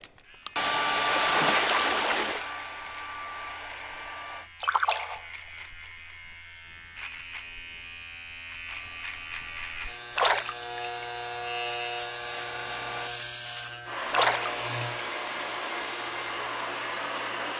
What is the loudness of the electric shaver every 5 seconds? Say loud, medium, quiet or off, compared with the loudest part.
quiet, medium, loud, medium.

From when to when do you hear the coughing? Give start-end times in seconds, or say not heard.
not heard.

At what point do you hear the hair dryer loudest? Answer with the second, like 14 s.
1 s.